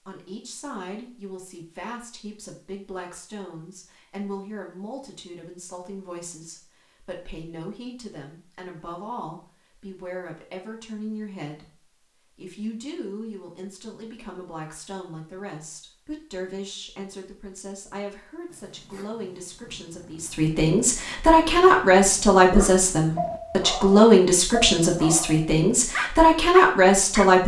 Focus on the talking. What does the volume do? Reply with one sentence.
The volume of the talking goes up.